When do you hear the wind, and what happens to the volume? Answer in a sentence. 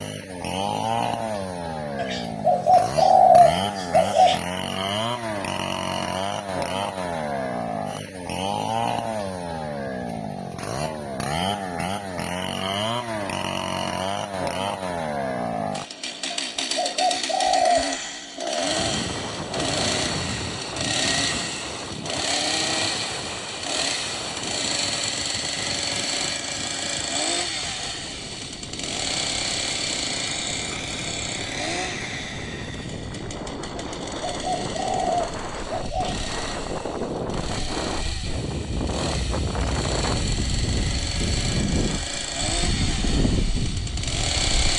The wind can be heard from 18.6 to 44.7 s, getting quieter then louder.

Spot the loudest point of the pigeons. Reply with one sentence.
The loudest moment of the pigeons is at 3 seconds.